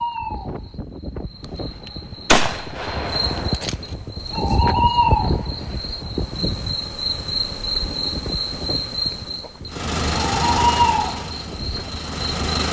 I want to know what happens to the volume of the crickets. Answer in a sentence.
The loudness of the crickets goes up.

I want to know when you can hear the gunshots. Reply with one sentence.
You can hear the gunshots from 2.2 to 3.8 s.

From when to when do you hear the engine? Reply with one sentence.
You can hear the engine from 9.7 to 12.6 s.